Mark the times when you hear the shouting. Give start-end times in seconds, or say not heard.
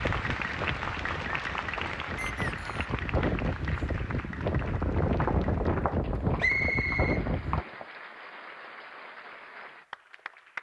not heard.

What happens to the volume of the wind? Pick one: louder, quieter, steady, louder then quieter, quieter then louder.
louder.